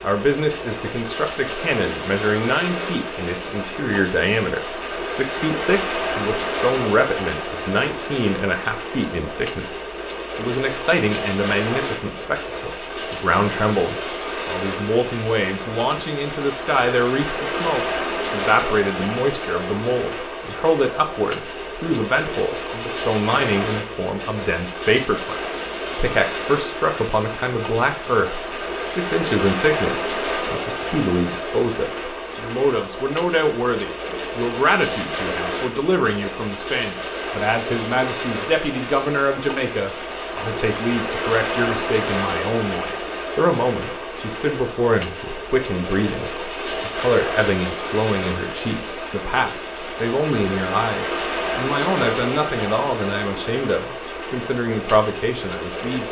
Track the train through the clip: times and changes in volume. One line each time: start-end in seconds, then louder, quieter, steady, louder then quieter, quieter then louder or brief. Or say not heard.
0.0-56.0 steady.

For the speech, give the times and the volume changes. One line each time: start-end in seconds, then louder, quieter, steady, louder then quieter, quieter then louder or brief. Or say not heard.
0.0-56.0 steady.